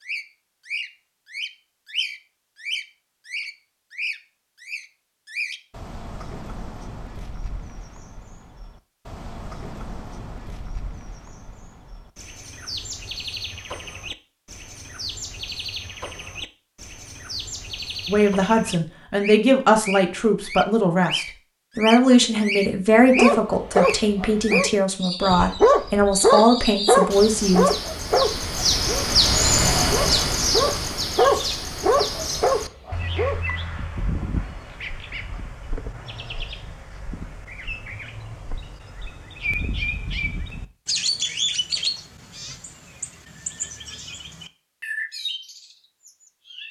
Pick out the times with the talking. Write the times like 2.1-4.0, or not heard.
18.1-27.7.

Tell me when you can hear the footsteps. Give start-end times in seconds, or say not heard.
not heard.